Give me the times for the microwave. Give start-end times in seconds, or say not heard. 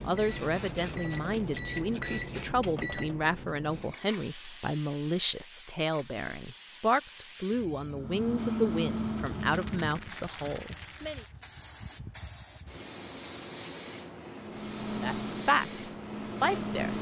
0.0-3.3, 7.9-10.2, 14.4-16.9.